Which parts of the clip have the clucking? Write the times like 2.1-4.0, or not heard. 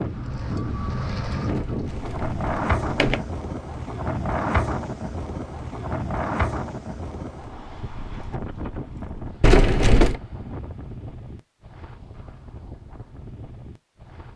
not heard.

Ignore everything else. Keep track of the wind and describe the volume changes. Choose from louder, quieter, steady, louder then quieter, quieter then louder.
quieter.